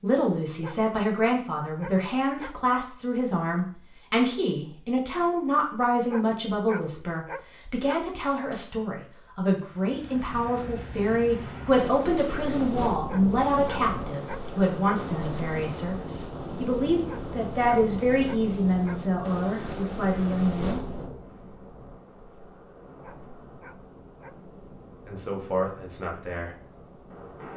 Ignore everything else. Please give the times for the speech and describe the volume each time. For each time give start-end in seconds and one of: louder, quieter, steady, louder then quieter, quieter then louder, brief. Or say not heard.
0.0-20.8 steady
25.1-26.5 brief.